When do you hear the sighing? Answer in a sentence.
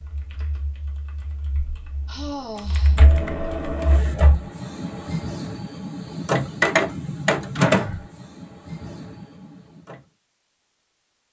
You can hear the sighing from 2.0 to 3.1 s and from 7.7 to 8.1 s.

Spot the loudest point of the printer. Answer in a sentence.
The loudest moment of the printer is at 7 seconds.